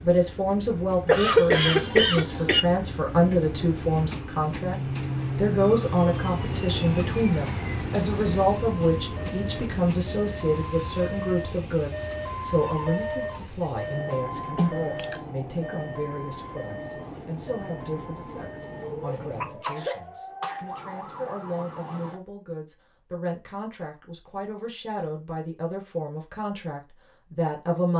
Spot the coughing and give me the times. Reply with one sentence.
You can hear the coughing from 1.1 to 2.6 s, from 14.6 to 15.2 s and from 19.1 to 20.6 s.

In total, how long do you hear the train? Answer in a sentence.
The train can be heard for 20 seconds in total.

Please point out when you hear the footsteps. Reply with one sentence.
You can't hear the footsteps here.